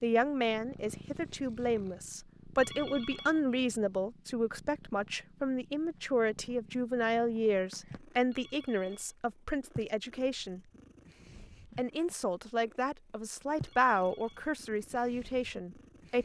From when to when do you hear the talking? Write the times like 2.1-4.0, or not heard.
0.0-10.6, 11.8-16.2.